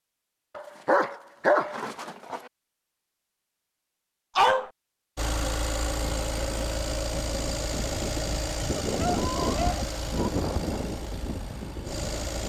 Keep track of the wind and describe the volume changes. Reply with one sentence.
The volume of the wind goes up, then down.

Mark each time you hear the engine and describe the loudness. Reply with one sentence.
You can hear the engine from 5.2 to 12.4 s, getting quieter.